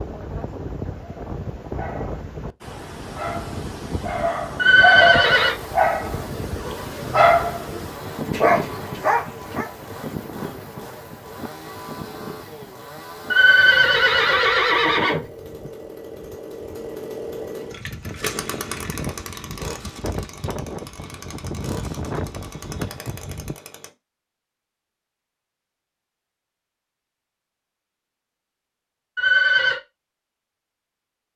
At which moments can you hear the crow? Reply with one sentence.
You can't hear the crow here.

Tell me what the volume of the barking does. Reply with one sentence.
The volume of the barking goes up.